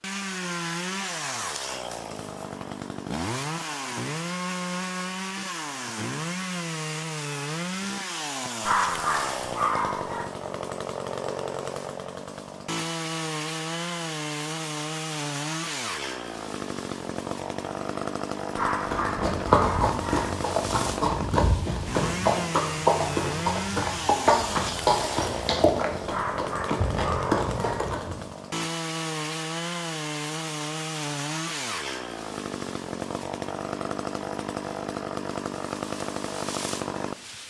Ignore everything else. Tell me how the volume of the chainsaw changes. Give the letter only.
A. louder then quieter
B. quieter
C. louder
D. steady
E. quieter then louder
D.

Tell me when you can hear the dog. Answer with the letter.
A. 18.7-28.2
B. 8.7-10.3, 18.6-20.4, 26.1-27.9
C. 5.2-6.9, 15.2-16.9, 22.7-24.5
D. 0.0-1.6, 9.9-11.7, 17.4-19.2
B.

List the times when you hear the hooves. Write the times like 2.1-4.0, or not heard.
18.7-28.2.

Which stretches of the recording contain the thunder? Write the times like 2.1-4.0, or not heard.
not heard.